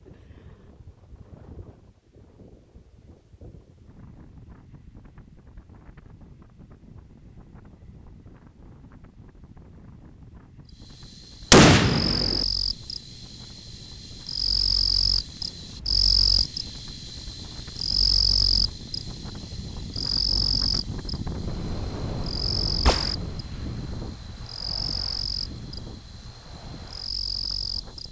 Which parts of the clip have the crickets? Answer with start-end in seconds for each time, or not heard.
10.8-28.0.